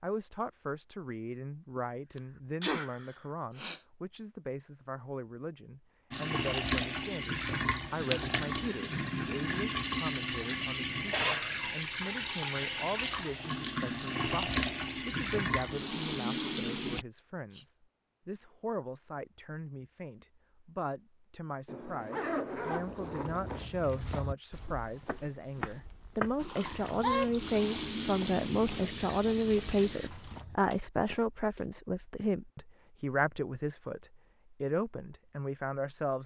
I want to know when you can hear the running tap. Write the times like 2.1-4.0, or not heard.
6.1-17.1, 26.4-30.4.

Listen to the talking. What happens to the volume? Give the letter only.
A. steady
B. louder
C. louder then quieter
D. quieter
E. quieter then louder
B.